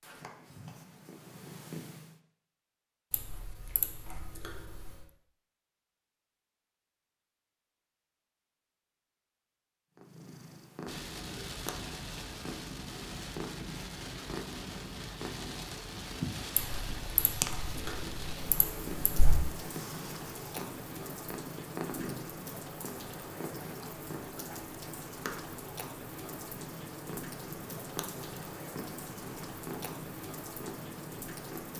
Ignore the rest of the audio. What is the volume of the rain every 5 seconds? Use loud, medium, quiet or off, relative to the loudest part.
off, off, loud, loud, loud, loud, loud.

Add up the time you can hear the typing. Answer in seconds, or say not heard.
5 s.